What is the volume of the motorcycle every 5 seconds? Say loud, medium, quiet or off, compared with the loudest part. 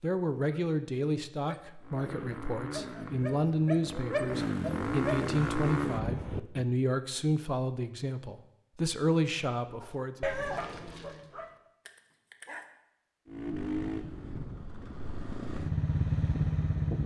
medium, loud, medium, loud.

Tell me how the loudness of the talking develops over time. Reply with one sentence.
The loudness of the talking stays about the same.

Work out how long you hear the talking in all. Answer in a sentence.
You can hear the talking for 10 seconds altogether.